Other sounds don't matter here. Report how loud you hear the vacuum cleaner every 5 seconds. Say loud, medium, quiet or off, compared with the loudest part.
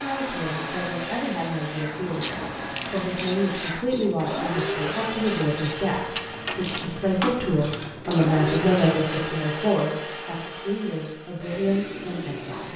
loud, loud, medium.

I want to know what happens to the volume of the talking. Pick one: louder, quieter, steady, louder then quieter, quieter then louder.
louder then quieter.